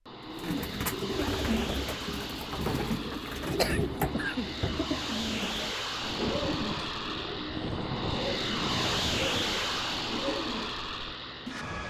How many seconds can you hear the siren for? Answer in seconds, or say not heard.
not heard.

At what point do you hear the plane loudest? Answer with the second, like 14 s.
9 s.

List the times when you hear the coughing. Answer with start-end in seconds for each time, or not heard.
3.5-4.6.